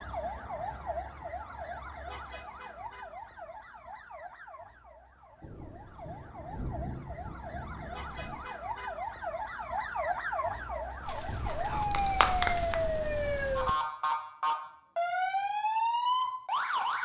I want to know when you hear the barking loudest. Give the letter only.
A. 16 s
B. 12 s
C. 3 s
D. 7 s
B.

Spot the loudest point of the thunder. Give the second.
7 s.